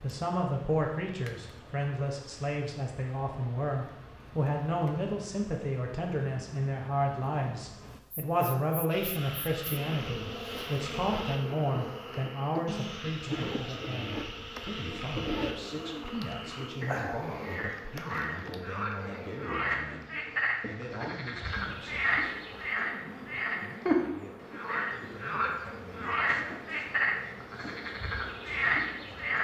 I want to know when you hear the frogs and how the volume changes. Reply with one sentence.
The frogs can be heard from 8.8 to 29.4 s, getting louder.